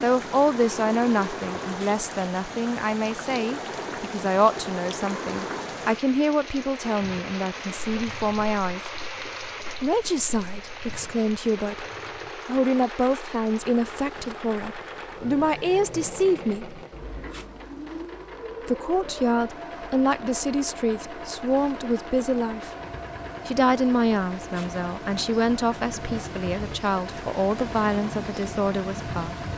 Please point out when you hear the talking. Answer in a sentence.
The talking can be heard from 0.0 to 8.8 s, from 9.8 to 16.8 s, from 18.6 to 22.7 s and from 23.4 to 29.4 s.